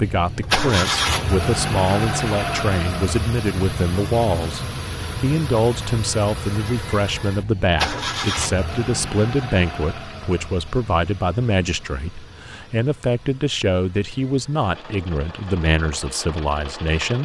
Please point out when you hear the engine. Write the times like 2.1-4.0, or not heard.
0.0-17.1.